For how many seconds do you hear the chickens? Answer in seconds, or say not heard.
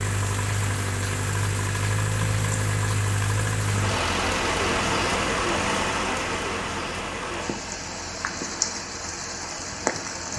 not heard.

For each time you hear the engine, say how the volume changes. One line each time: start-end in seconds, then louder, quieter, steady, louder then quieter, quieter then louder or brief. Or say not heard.
0.0-10.3 quieter.